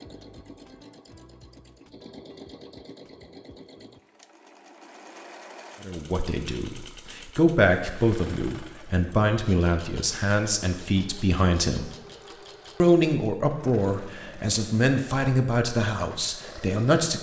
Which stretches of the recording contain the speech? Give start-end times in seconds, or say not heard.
5.8-11.9, 12.8-17.1.